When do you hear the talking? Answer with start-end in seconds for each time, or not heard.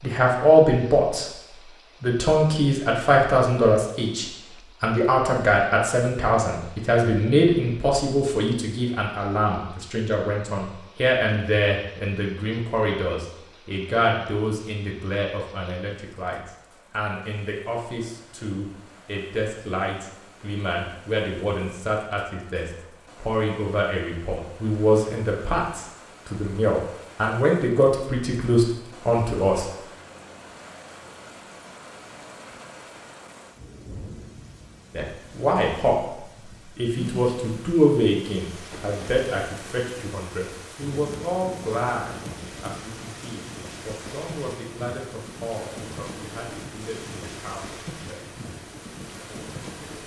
0.0-1.3, 2.0-29.6, 34.9-48.3.